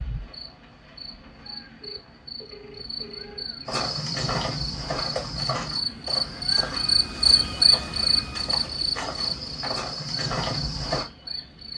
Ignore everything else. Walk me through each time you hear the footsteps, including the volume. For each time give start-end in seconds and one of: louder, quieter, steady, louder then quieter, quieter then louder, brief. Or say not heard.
3.6-11.1 quieter then louder.